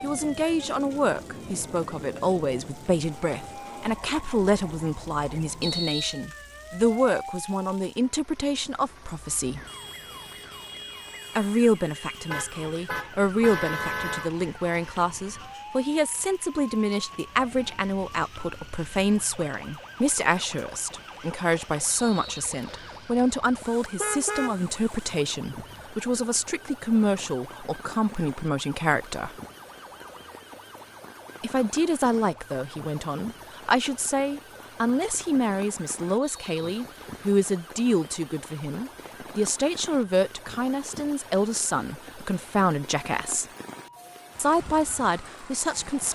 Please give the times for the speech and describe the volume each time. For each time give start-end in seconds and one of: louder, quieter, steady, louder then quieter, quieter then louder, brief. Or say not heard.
0.0-9.6 steady
11.3-29.4 steady
31.4-43.5 steady
44.4-46.0 brief.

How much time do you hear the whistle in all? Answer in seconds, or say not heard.
3 s.